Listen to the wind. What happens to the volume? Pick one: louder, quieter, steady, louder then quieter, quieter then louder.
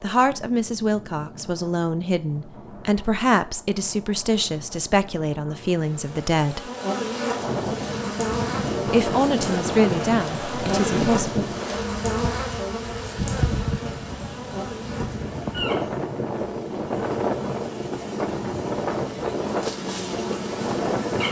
louder.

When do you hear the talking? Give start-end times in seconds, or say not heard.
0.0-6.7, 8.8-11.4.